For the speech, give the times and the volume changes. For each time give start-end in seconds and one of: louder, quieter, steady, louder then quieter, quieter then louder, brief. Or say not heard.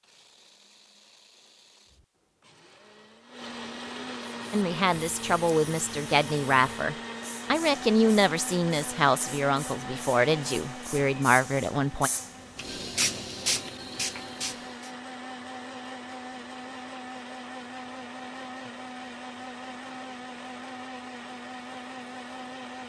4.5-12.1 steady.